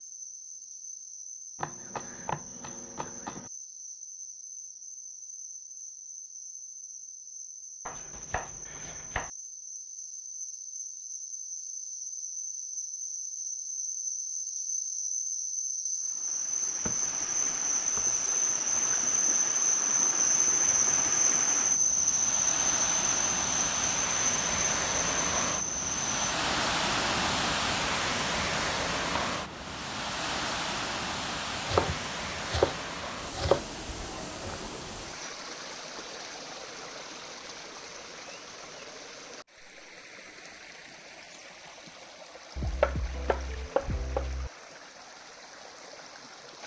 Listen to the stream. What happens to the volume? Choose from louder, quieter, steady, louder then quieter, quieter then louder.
louder then quieter.